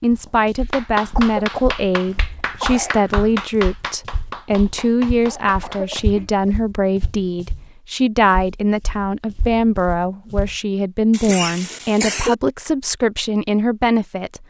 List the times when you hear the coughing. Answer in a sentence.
You can hear the coughing from 1.0 to 3.0 s, from 5.2 to 6.5 s and from 11.1 to 12.3 s.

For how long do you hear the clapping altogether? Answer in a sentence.
The clapping can be heard for 6 seconds in total.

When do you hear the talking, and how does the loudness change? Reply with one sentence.
The talking can be heard from 0.0 to 14.4 s, at a steady volume.